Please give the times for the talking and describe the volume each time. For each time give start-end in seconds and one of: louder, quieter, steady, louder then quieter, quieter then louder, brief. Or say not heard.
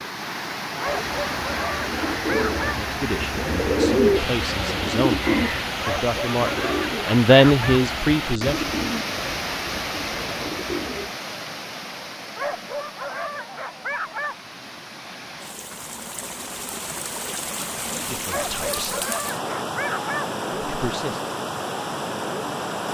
2.6-8.8 louder
18.1-19.0 brief
20.6-21.2 brief.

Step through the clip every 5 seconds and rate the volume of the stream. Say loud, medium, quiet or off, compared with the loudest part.
loud, loud, medium, loud, loud.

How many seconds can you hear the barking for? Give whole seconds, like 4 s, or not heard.
8 s.